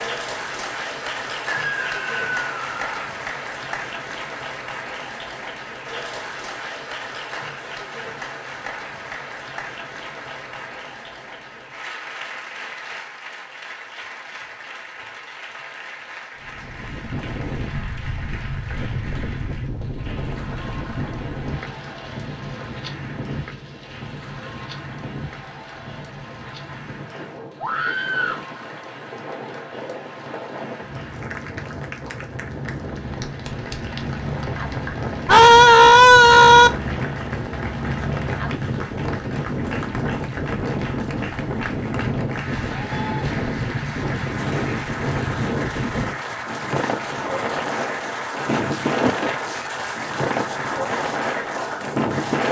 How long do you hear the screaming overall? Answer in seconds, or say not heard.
4 s.